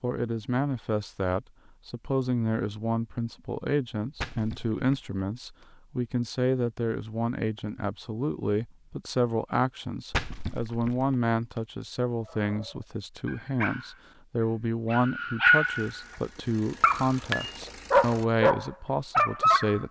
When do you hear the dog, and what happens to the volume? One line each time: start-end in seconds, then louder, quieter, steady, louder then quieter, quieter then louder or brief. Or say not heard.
12.2-19.8 louder.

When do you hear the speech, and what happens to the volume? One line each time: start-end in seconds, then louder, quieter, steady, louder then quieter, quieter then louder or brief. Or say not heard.
0.0-19.8 steady.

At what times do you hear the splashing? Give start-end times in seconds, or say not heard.
4.2-5.2, 10.1-11.2.